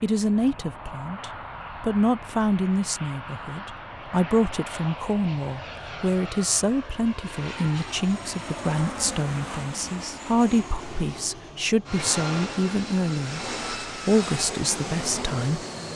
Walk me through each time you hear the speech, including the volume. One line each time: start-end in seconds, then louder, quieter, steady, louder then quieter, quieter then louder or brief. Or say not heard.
0.0-15.6 steady.